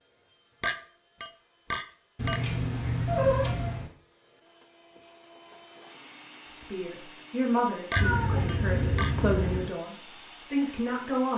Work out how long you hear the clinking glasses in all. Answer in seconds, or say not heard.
3 s.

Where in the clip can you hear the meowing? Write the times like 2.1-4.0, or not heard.
2.1-3.9, 8.0-9.7.